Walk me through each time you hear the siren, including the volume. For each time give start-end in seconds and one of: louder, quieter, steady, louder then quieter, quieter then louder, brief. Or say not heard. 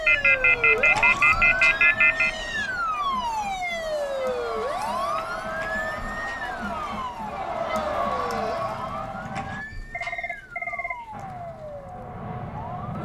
0.0-13.0 quieter.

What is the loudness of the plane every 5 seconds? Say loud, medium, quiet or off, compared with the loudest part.
off, loud, loud.